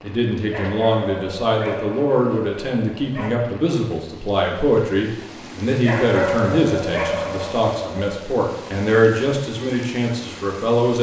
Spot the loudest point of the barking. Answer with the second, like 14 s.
6 s.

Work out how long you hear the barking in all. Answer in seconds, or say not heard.
5 s.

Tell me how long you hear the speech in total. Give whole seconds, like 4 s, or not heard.
11 s.